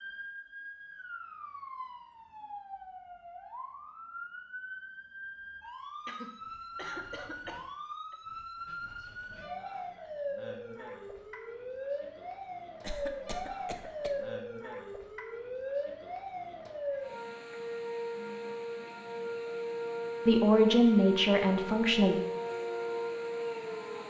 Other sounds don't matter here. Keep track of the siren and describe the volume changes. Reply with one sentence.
The volume of the siren goes up.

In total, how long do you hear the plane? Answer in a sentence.
The plane can't be heard in this clip.